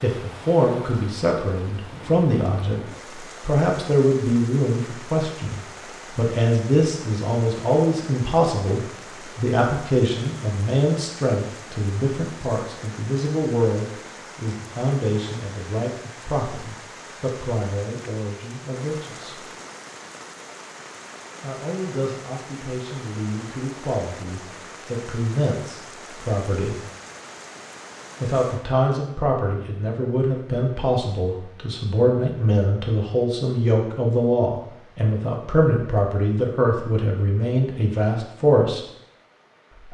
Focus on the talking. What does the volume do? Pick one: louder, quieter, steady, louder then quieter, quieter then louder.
quieter then louder.